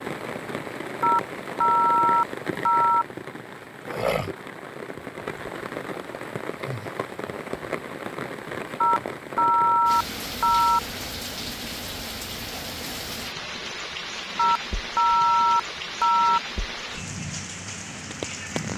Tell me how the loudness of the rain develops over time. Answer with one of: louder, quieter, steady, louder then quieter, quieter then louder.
steady.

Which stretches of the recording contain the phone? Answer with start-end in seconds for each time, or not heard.
1.0-3.0, 8.8-10.8, 14.3-16.4.